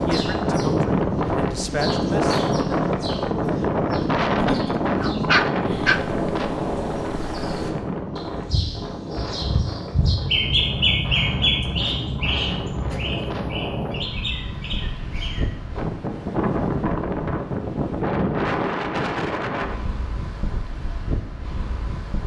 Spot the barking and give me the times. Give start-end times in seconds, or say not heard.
4.3-6.0.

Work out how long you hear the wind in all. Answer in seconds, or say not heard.
22 s.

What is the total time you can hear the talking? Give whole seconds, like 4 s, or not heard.
2 s.